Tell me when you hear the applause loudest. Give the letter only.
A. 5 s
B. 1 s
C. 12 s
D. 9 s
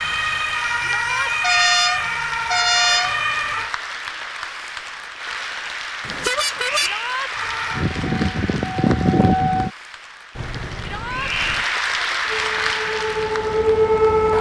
C.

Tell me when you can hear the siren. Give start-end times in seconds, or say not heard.
0.0-3.7, 7.3-9.7, 12.2-14.3.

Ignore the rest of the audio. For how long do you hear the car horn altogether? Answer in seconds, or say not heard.
4 s.